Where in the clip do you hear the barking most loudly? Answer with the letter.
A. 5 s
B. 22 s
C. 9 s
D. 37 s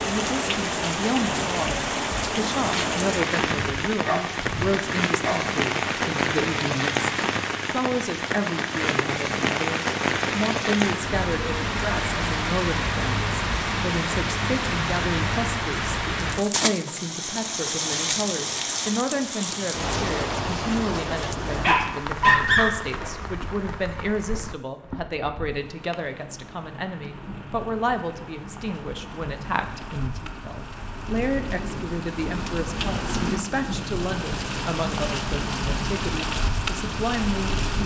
B.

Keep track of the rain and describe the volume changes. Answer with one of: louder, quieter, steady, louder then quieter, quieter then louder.
quieter then louder.